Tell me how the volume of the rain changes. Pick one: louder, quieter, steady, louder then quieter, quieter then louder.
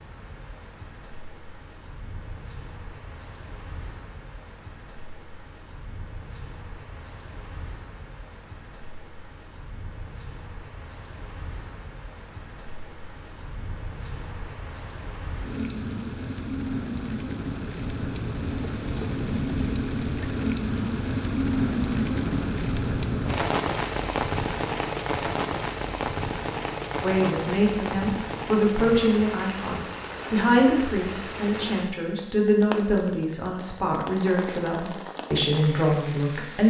louder then quieter.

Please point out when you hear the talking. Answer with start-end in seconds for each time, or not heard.
27.0-36.6.